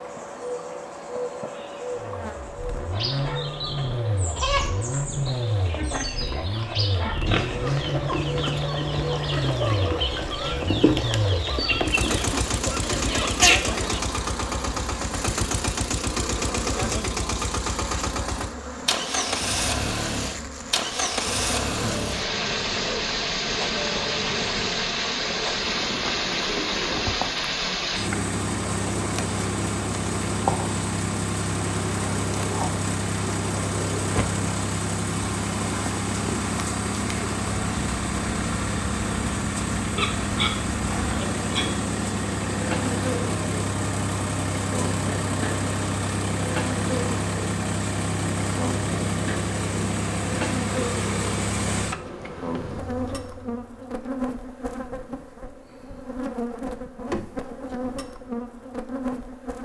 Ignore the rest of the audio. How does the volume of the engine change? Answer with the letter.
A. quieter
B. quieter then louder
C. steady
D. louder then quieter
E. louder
C.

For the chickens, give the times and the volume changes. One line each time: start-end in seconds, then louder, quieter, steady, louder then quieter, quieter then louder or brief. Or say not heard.
2.9-14.0 louder.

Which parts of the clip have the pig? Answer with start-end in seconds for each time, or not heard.
7.0-7.8, 40.0-41.6.